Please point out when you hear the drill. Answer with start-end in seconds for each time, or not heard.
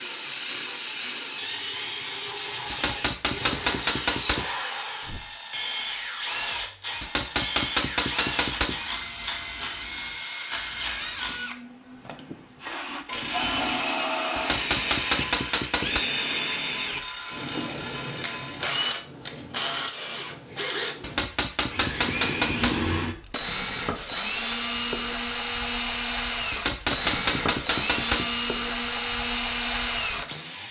0.0-30.6.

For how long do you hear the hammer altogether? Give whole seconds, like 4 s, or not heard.
9 s.